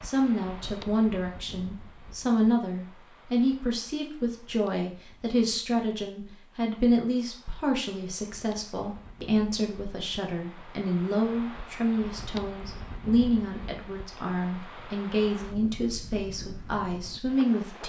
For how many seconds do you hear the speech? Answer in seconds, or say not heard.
18 s.